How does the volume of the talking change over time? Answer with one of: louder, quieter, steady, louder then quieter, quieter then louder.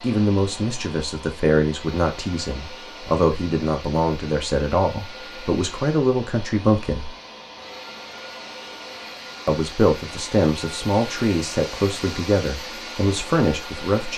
steady.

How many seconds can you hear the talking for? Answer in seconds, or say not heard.
12 s.